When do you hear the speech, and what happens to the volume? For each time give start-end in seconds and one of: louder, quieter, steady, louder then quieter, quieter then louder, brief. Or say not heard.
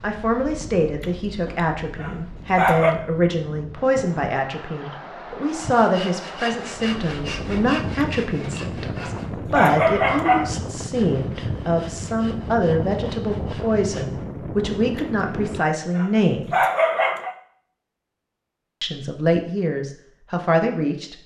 0.0-16.6 steady
18.8-21.1 brief.